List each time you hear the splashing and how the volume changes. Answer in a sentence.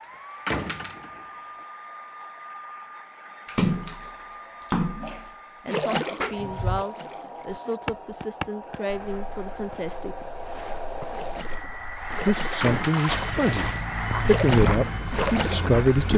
The splashing can be heard from 3.5 to 7.8 s, getting louder then quieter; and from 10.4 to 15.8 s, getting louder.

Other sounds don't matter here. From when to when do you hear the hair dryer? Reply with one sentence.
You can hear the hair dryer from 0.0 to 16.1 s.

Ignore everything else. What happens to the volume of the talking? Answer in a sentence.
The loudness of the talking goes up.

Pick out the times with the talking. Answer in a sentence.
The talking can be heard from 5.6 to 10.2 s and from 12.2 to 16.1 s.